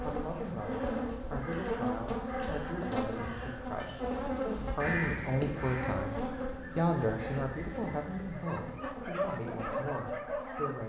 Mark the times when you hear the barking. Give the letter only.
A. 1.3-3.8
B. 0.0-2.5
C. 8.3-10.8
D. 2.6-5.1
C.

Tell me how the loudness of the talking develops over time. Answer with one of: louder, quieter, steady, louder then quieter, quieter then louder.
louder then quieter.